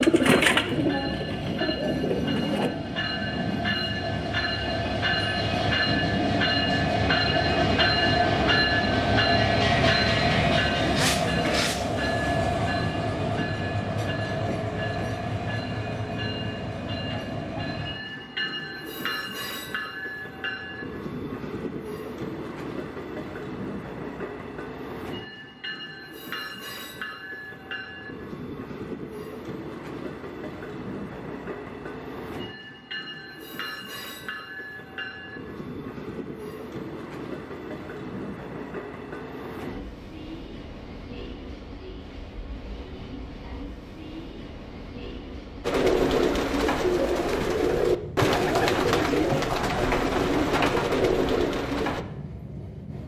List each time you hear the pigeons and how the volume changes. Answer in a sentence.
The pigeons can be heard briefly from 0.0 to 2.7 s; and from 45.6 to 52.0 s, at a steady volume.